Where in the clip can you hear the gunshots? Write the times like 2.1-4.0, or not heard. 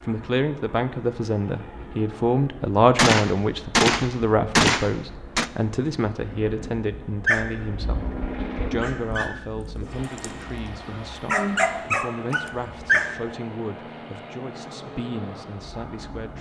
3.0-5.5.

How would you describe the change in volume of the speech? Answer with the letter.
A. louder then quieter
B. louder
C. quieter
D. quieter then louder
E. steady
C.